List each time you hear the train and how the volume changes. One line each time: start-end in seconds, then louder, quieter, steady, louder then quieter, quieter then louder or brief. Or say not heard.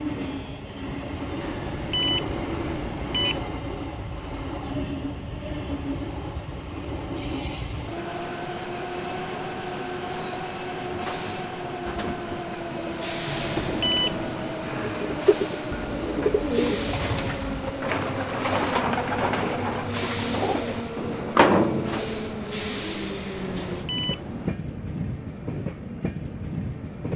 0.0-27.1 steady.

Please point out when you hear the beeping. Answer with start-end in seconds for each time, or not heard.
1.4-3.4, 13.3-14.6, 23.4-24.6.